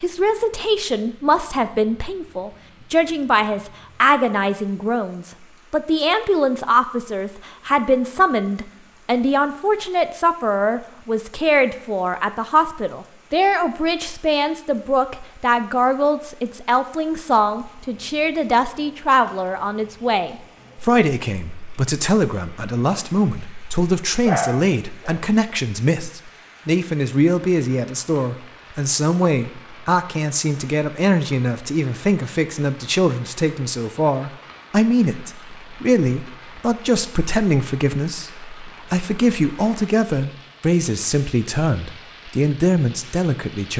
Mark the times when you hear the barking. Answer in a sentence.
The barking can be heard from 24.2 to 25.2 s.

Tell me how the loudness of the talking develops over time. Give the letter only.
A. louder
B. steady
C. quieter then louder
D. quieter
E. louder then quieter
B.